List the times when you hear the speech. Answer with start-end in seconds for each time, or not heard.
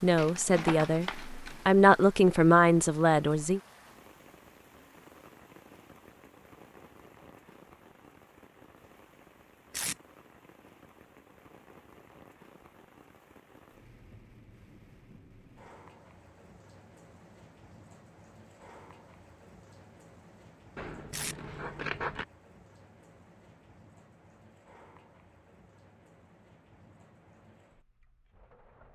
0.0-3.6.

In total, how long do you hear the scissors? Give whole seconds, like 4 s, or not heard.
3 s.